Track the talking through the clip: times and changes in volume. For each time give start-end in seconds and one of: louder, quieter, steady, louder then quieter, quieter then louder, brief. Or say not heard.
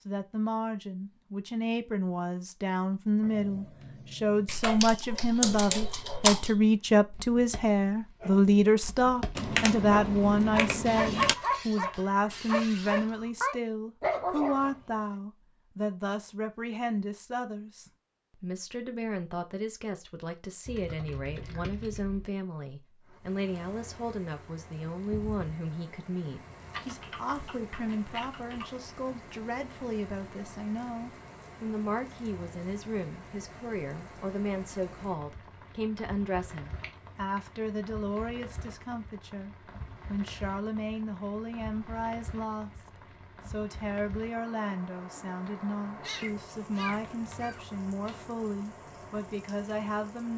0.1-50.3 quieter.